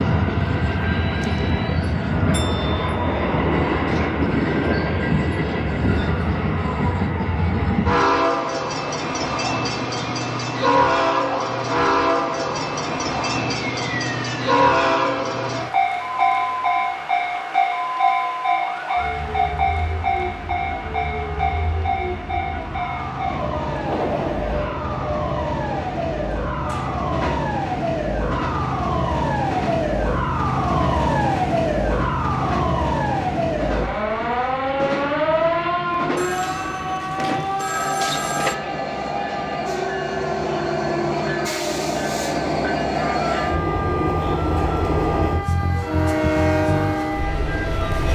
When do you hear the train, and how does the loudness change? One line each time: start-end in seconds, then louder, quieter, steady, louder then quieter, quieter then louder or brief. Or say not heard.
0.0-48.1 quieter then louder.